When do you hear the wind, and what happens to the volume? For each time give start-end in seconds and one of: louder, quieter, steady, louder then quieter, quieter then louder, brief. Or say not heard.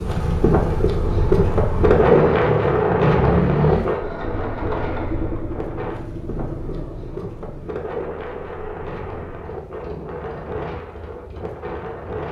0.0-12.2 quieter.